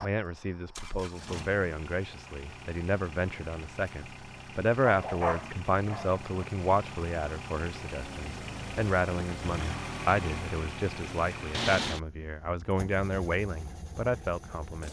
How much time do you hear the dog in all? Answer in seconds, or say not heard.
2 s.